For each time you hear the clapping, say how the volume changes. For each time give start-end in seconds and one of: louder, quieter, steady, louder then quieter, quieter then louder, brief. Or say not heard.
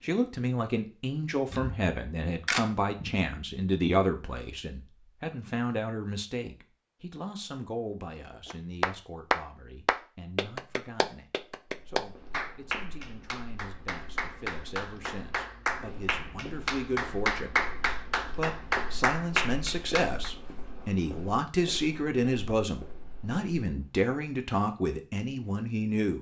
8.5-20.3 quieter then louder.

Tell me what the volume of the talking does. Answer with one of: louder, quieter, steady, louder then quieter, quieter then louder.
quieter then louder.